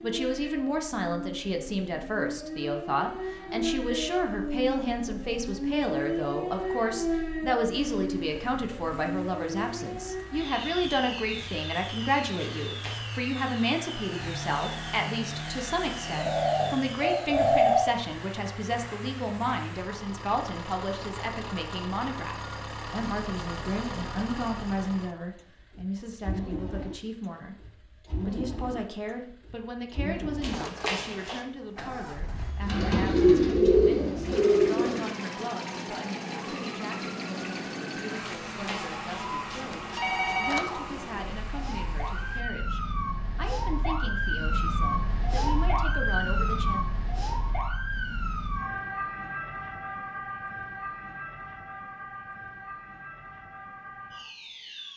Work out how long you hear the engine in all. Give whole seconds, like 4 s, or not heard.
35 s.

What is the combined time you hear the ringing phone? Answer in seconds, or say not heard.
4 s.